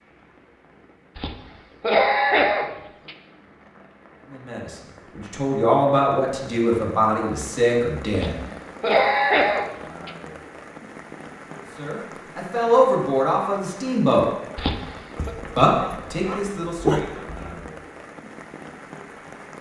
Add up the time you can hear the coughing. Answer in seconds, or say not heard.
5 s.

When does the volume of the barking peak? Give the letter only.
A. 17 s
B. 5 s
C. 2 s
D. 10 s
A.